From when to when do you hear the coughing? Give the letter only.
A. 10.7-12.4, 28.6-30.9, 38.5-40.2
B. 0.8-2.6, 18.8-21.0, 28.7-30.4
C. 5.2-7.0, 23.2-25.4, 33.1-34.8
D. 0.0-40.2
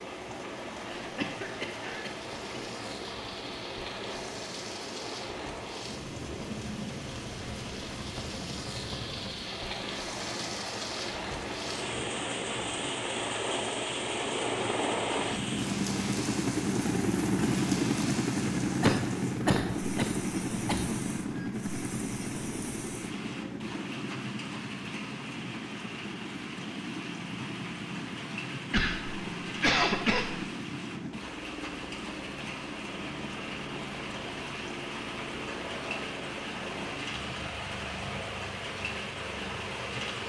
B.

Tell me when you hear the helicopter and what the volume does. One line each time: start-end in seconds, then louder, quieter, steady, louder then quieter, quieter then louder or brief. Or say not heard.
0.0-40.2 louder then quieter.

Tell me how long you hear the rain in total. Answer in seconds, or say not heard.
40 s.